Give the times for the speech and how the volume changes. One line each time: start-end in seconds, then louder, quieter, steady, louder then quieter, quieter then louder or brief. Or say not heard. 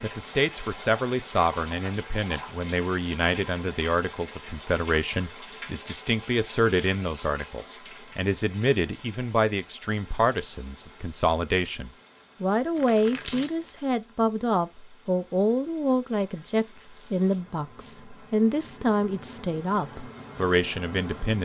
0.0-21.3 steady.